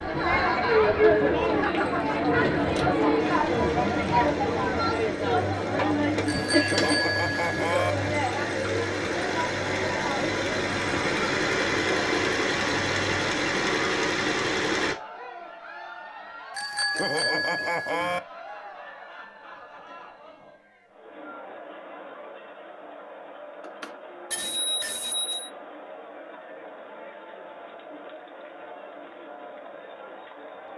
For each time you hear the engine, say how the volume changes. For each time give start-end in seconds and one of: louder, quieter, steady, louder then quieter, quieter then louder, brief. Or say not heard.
3.1-14.9 louder.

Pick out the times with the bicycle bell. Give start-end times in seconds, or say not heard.
6.2-8.0, 16.6-18.2, 23.6-25.5.